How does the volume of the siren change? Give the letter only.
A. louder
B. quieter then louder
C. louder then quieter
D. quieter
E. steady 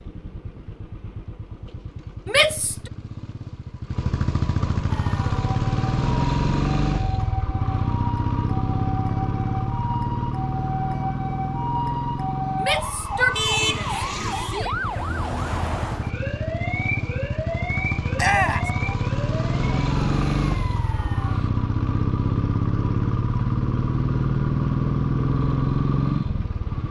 C.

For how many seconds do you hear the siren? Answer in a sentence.
The siren can be heard for 17 seconds in total.